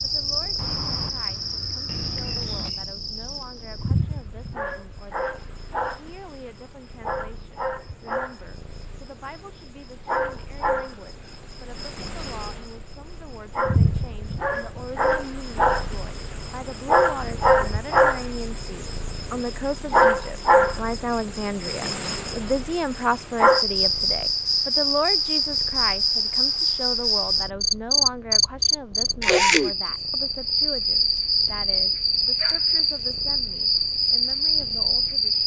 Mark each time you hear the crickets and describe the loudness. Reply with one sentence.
You can hear the crickets from 0.0 to 35.4 s, getting louder.